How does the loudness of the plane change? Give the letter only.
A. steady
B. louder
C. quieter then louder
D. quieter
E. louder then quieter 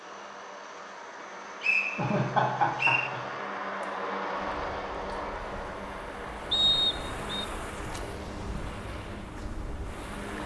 E.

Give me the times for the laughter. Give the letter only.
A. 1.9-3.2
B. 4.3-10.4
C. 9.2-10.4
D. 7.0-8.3
A.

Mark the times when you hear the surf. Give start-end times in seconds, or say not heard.
4.3-10.4.